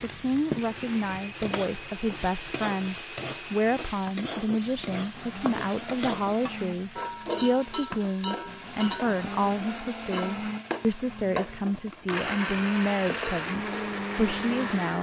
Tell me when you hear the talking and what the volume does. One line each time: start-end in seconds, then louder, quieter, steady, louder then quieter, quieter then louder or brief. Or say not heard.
0.0-14.9 steady.